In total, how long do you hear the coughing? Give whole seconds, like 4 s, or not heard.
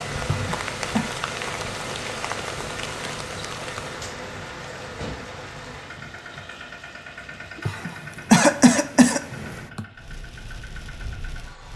3 s.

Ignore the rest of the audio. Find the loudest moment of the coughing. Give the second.
8 s.